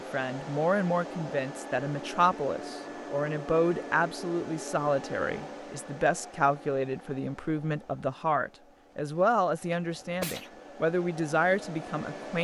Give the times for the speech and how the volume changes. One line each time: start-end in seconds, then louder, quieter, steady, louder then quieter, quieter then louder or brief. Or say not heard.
0.1-12.3 steady.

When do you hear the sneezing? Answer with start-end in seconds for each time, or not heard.
9.7-10.5.